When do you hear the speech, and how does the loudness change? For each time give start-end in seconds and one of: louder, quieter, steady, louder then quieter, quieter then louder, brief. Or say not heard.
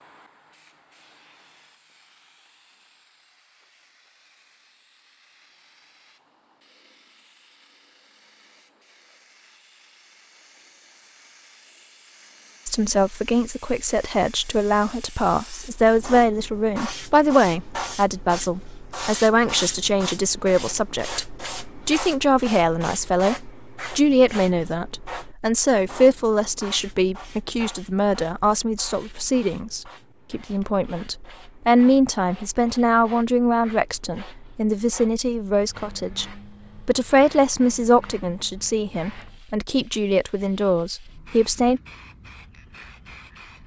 12.7-41.8 steady.